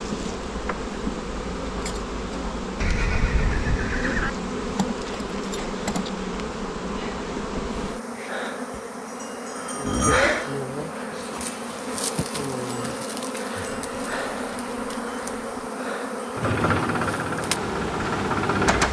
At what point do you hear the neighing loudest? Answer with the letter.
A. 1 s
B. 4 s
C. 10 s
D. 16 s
C.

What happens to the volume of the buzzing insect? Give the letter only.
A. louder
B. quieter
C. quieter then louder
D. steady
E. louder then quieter
D.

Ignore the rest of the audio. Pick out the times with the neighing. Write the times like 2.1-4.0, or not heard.
2.8-4.3, 9.8-10.4, 13.7-15.7.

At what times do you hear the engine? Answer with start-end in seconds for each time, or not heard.
16.4-18.8.